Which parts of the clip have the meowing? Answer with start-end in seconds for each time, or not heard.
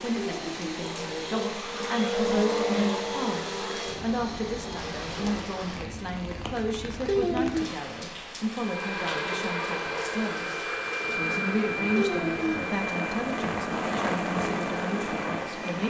0.1-0.7, 7.0-7.7, 11.9-12.8.